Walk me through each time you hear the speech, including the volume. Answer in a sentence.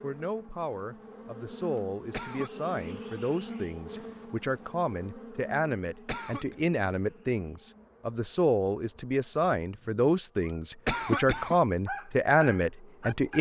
The speech can be heard from 0.0 to 13.3 s, getting louder.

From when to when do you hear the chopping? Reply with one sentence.
You can't hear the chopping here.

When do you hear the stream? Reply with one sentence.
You can't hear the stream here.